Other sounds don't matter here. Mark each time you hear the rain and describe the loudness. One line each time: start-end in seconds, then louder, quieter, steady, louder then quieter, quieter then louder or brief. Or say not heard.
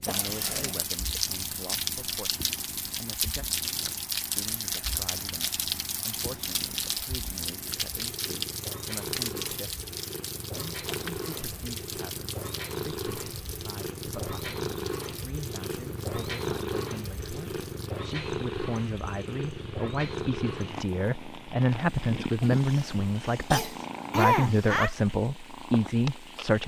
0.0-26.6 quieter.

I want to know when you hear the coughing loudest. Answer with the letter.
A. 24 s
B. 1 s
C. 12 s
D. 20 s
A.